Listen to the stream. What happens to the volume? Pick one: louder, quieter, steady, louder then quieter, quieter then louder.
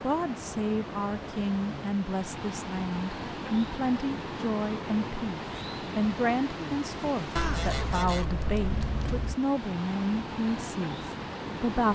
steady.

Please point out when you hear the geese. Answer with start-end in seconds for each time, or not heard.
7.3-9.3.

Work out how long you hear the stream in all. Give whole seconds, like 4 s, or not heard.
12 s.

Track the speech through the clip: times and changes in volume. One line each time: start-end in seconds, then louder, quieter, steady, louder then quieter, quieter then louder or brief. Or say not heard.
0.0-11.9 steady.